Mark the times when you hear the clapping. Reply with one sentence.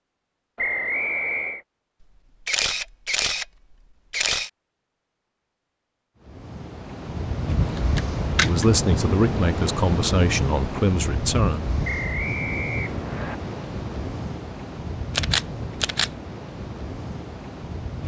The clapping can't be heard in this clip.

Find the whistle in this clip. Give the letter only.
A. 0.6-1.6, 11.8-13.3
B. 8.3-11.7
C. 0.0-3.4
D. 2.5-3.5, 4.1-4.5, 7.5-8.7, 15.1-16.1
A.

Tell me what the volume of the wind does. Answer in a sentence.
The volume of the wind goes down.